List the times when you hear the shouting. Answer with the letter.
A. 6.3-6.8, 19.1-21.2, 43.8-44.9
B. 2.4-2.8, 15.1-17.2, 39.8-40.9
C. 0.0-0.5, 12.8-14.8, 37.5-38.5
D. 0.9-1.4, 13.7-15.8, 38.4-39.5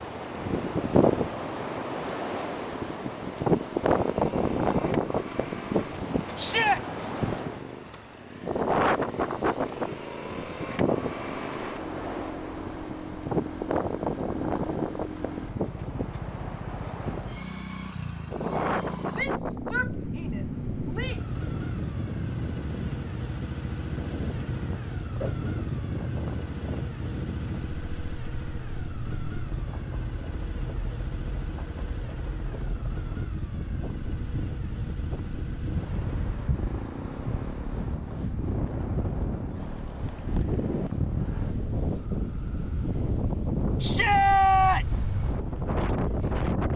A.